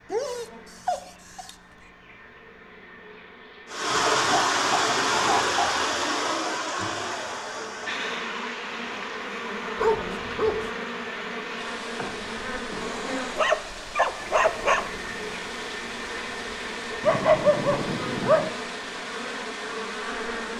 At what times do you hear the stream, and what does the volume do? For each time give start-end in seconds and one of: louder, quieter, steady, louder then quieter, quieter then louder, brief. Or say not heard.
3.6-20.5 quieter.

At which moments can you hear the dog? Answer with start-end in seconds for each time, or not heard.
0.1-1.6, 4.2-5.9, 9.8-10.7, 12.8-14.8, 17.0-18.5.